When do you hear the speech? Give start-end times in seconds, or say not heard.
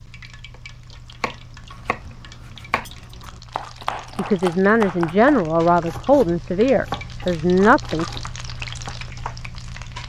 4.2-8.1.